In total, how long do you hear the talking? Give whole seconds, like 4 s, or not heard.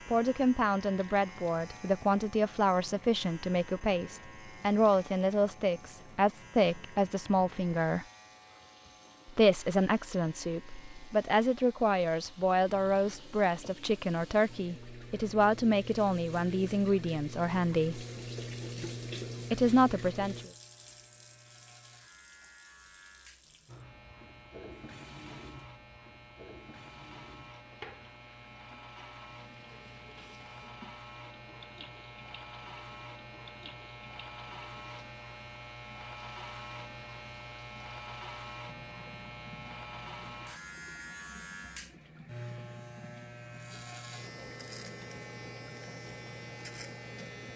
18 s.